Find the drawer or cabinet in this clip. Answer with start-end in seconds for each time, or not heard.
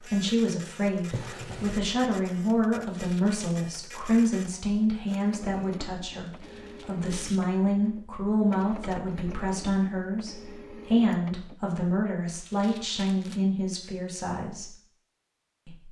1.0-1.8.